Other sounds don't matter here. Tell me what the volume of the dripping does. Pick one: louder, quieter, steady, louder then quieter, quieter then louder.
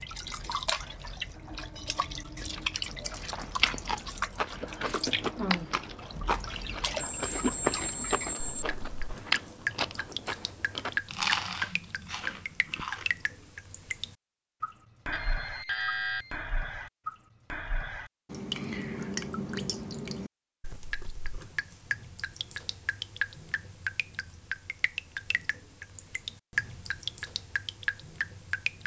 steady.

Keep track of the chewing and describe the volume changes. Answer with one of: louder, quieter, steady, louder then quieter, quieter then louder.
steady.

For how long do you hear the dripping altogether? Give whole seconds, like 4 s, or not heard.
29 s.